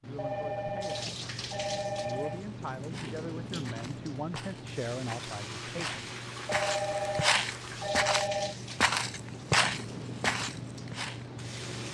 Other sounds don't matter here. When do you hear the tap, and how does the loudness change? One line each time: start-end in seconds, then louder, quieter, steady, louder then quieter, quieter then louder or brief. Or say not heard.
0.0-11.8 steady.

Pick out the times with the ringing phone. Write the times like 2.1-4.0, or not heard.
0.1-2.5, 6.5-8.6.